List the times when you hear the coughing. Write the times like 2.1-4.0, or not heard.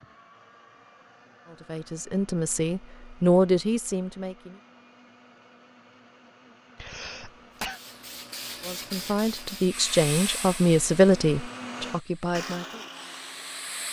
6.8-7.8.